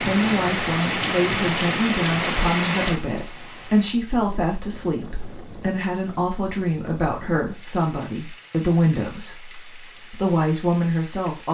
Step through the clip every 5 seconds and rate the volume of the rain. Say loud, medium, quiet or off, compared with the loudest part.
loud, quiet, quiet.